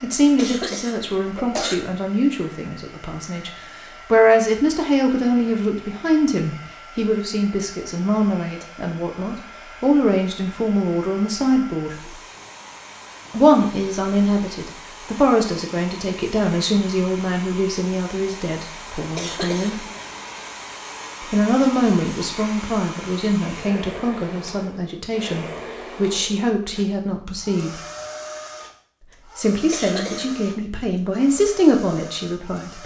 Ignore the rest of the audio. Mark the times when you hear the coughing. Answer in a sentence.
You can hear the coughing from 0.3 to 1.8 s, from 19.1 to 19.9 s and from 29.7 to 30.4 s.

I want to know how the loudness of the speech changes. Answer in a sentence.
The volume of the speech stays about the same.